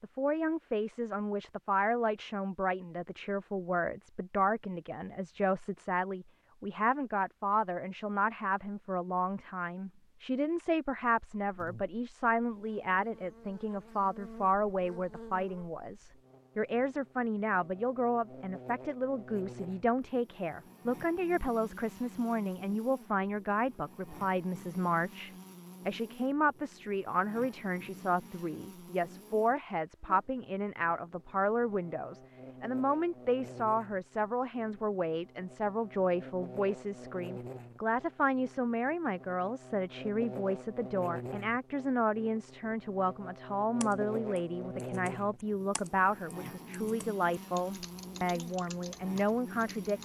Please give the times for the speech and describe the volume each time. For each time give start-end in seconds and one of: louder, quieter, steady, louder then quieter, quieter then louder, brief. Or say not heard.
0.0-50.0 steady.